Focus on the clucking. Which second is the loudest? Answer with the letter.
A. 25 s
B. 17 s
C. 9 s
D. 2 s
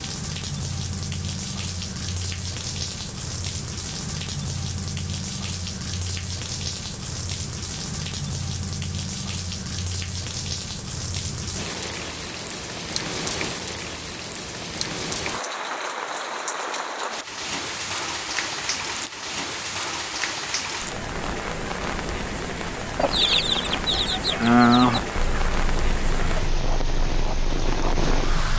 A.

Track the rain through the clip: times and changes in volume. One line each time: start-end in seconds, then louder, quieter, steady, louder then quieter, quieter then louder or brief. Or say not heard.
0.0-28.5 steady.